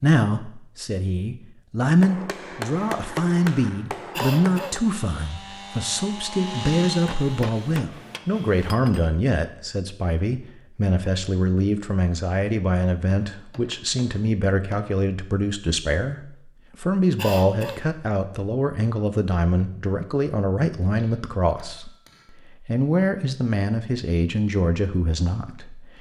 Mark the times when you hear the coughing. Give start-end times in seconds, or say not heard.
4.1-4.8, 17.1-17.8.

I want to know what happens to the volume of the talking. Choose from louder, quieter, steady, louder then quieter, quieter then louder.
steady.